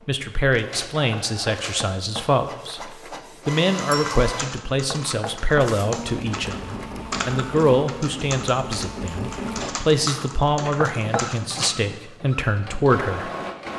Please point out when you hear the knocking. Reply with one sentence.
The knocking can be heard from 1.2 to 3.1 s, from 4.9 to 6.9 s and from 10.8 to 11.3 s.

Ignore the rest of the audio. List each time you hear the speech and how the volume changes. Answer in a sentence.
You can hear the speech from 0.1 to 13.3 s, at a steady volume.